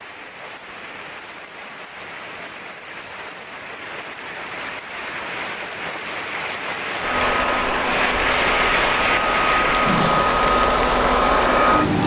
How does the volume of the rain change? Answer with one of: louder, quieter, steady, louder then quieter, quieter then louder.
louder.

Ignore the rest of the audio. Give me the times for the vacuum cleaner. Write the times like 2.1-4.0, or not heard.
7.0-12.0.